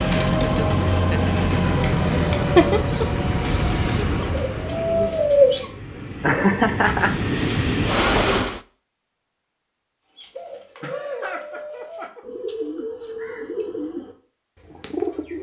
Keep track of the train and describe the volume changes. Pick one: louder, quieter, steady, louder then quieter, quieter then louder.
quieter then louder.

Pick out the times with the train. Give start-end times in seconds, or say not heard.
0.0-8.6.